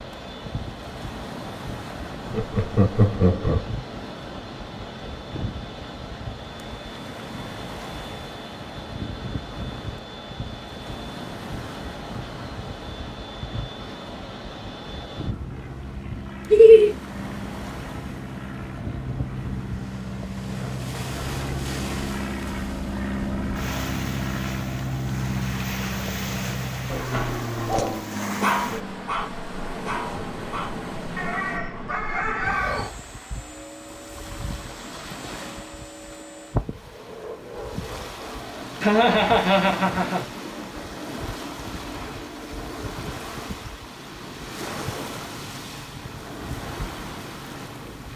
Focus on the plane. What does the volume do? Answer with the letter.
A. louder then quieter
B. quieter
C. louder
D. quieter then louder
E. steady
A.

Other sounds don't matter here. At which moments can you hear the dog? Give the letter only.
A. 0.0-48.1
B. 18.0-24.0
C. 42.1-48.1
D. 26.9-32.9
D.